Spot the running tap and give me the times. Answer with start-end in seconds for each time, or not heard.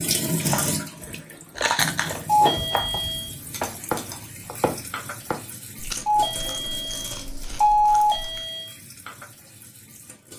0.0-10.3.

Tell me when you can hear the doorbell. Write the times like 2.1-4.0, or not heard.
2.2-3.3, 6.0-8.8.